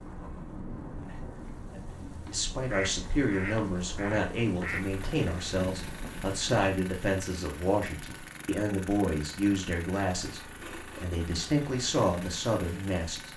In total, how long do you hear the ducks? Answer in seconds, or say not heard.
2 s.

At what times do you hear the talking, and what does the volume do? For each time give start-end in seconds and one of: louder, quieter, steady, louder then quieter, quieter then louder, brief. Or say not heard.
1.8-13.3 steady.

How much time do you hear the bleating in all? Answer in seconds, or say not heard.
not heard.